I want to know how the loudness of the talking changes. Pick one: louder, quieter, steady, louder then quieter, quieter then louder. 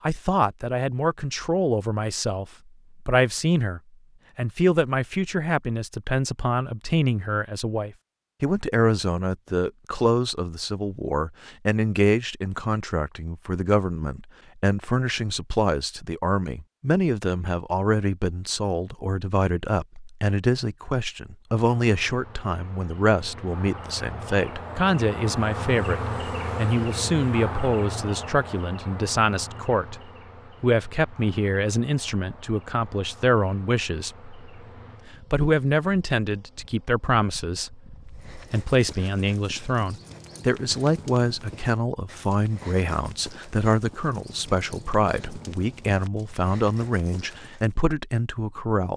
steady.